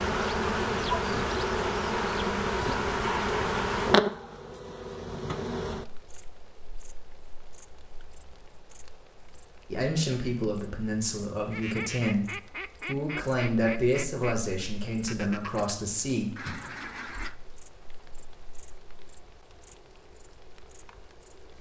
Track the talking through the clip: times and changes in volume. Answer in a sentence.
You can hear the talking from 9.7 to 16.6 s, at a steady volume.